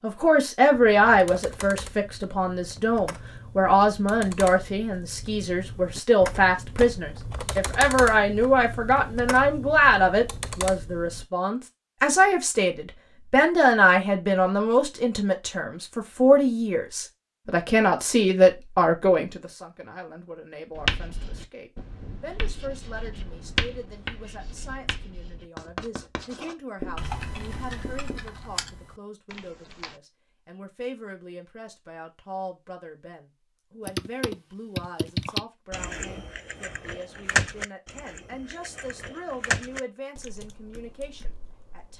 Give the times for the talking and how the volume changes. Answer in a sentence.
You can hear the talking from 0.0 to 41.9 s, getting quieter.